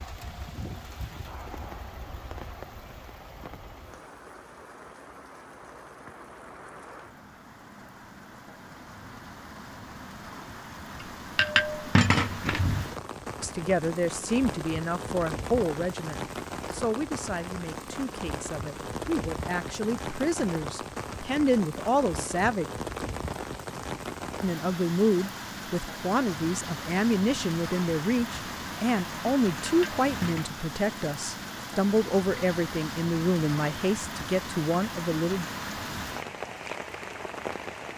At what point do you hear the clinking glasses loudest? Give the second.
12 s.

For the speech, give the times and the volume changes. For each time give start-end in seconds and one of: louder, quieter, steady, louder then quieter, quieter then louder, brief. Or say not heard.
13.4-22.6 quieter then louder
24.4-35.5 steady.